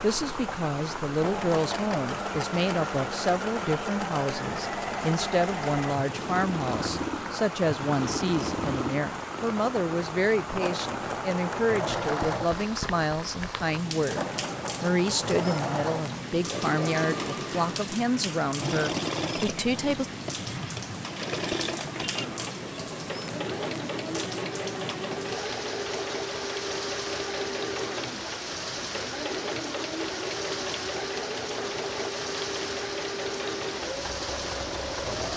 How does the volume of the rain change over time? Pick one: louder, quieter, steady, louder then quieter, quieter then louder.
steady.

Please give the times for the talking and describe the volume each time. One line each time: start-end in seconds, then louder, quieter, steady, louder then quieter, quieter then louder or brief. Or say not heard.
0.0-20.1 steady.